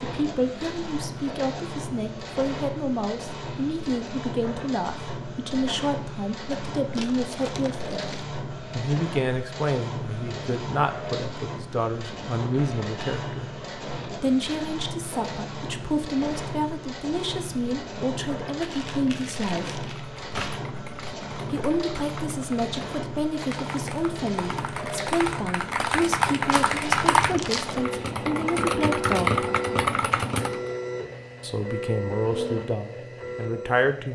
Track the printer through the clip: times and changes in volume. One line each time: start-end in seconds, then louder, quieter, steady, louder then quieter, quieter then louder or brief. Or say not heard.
0.0-34.0 steady.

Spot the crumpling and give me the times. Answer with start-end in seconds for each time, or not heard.
7.0-8.2, 18.6-20.6, 26.5-27.8.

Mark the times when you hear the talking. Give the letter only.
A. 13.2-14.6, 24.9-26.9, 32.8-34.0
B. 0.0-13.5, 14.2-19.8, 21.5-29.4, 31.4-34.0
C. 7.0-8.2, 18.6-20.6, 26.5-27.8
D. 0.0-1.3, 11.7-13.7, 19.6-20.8
B.